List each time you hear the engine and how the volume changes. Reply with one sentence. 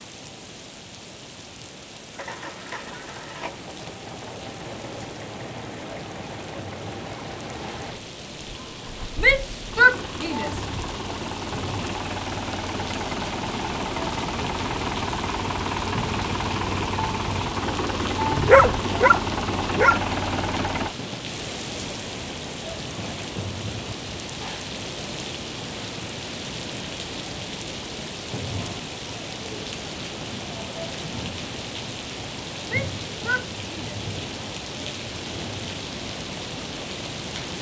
You can hear the engine from 2.1 to 20.9 s, getting louder.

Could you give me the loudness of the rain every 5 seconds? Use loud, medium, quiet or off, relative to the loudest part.
medium, medium, loud, loud, loud, loud, loud, loud.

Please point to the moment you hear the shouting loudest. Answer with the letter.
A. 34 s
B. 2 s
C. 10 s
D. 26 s
C.